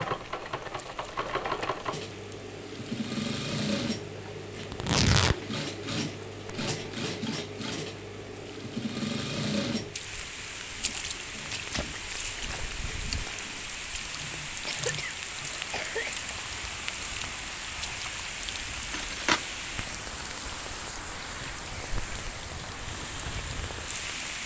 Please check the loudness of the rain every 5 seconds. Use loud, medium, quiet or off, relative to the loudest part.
quiet, quiet, loud, loud, loud.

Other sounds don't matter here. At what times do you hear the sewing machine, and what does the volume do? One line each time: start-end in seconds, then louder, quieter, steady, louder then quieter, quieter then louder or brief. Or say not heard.
0.0-18.0 quieter.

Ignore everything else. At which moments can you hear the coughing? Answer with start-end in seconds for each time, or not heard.
14.7-16.2.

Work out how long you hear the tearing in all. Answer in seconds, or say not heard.
2 s.